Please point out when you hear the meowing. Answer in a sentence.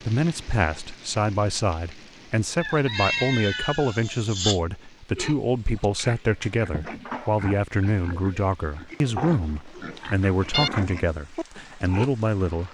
You can hear the meowing from 2.9 to 4.6 s and from 9.9 to 10.7 s.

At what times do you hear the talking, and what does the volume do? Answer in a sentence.
The talking can be heard from 0.1 to 12.6 s, at a steady volume.